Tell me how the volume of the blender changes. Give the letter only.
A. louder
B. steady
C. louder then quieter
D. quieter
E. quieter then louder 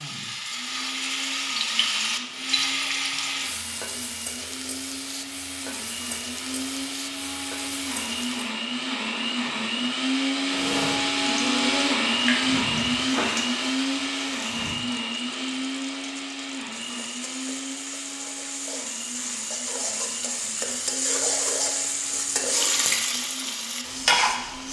C.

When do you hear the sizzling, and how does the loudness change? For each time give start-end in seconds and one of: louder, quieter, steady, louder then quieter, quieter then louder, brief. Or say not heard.
0.0-8.5 quieter
10.5-24.6 quieter then louder.